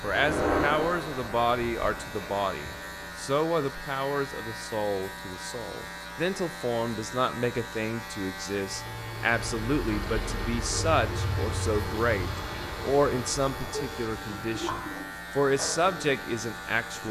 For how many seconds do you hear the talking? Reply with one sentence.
The talking can be heard for 17 seconds in total.